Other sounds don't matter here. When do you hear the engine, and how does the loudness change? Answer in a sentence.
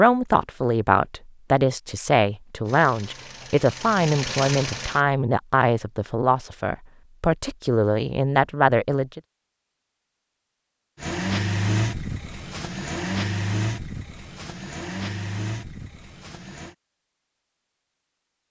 The engine can be heard briefly from 2.6 to 5.0 s; and from 10.9 to 16.8 s, getting quieter.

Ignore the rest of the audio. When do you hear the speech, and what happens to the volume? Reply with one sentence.
The speech can be heard from 0.0 to 9.2 s, at a steady volume.